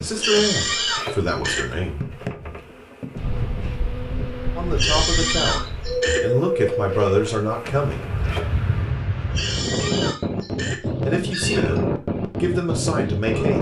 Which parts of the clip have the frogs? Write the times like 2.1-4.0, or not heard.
not heard.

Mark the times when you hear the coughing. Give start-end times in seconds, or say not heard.
0.1-1.7, 4.8-6.8, 9.3-11.8.